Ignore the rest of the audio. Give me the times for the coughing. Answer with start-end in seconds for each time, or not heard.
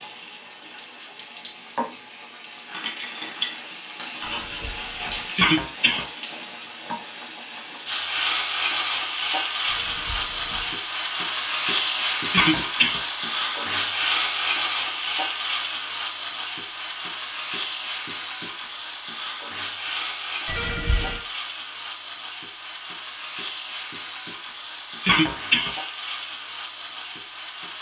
5.3-6.0, 12.3-13.0, 25.0-25.8.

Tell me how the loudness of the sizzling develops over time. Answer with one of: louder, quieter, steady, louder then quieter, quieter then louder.
louder then quieter.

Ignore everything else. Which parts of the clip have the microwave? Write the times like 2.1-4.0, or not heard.
not heard.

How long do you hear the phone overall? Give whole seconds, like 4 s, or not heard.
3 s.